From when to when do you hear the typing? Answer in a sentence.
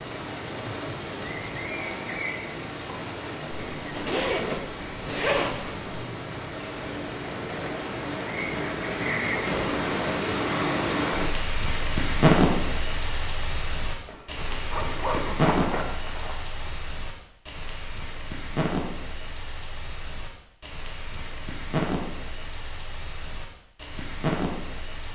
You can't hear the typing here.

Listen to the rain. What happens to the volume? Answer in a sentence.
The volume of the rain goes up, then down.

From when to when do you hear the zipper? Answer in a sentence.
You can hear the zipper from 3.8 to 5.9 s and from 14.1 to 16.7 s.